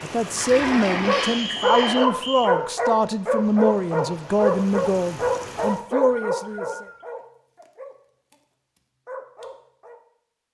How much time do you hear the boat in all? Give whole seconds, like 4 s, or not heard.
2 s.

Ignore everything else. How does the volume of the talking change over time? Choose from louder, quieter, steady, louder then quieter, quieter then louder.
steady.